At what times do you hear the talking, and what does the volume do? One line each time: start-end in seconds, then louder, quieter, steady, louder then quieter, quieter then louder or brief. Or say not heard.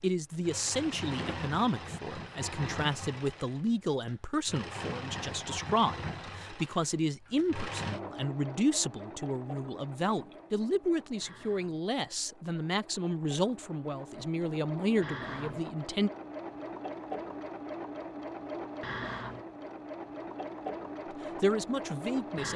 0.0-16.1 steady
21.1-22.5 brief.